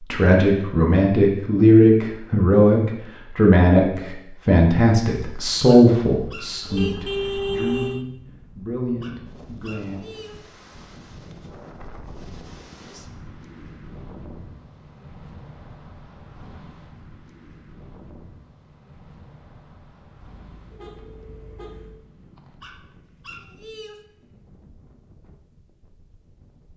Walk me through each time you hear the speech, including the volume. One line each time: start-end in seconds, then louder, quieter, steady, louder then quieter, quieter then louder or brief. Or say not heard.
0.0-10.0 quieter.